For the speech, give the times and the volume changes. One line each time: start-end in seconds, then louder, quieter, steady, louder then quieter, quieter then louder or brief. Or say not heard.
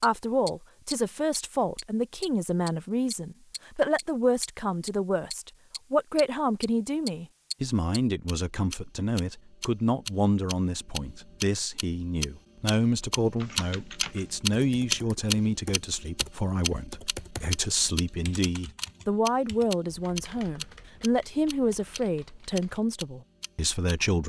0.0-24.2 steady.